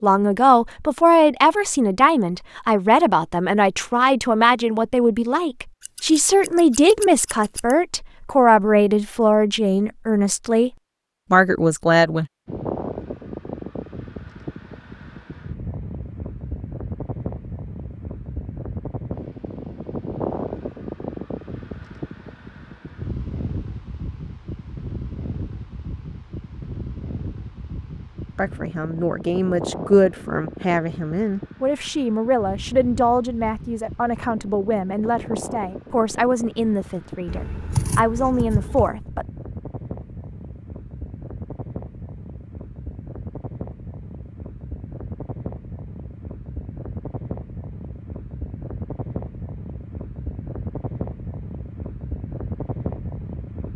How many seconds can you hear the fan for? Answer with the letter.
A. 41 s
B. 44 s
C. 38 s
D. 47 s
A.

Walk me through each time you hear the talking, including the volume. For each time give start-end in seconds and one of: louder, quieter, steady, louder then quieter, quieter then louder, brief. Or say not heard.
0.0-10.7 steady
11.3-12.2 brief
28.4-39.2 steady.